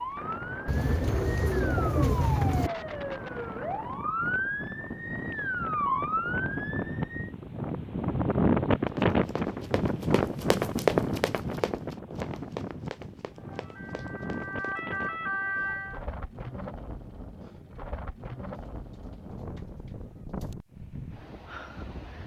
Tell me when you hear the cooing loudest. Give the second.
2 s.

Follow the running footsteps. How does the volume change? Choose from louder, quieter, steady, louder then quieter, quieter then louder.
louder then quieter.